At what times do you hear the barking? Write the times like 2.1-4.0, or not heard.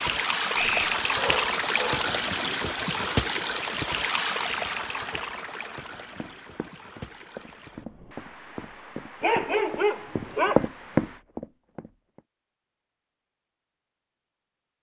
1.0-2.0, 9.2-10.7.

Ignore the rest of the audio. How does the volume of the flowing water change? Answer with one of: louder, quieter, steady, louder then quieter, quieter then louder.
quieter.